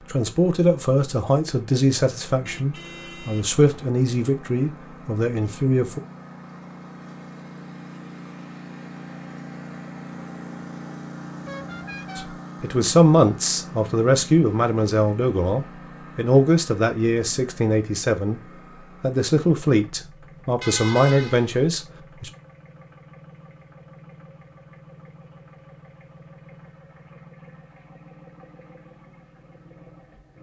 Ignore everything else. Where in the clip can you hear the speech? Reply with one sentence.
The speech can be heard from 0.1 to 6.0 s, from 12.2 to 18.4 s and from 19.0 to 22.3 s.